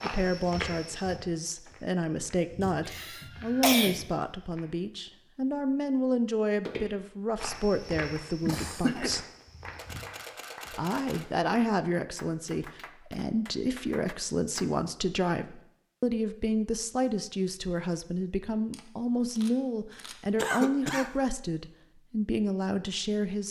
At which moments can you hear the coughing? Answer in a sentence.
You can hear the coughing from 2.9 to 4.0 s, from 8.4 to 9.1 s and from 20.4 to 21.1 s.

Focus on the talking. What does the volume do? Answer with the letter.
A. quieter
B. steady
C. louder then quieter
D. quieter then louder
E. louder
B.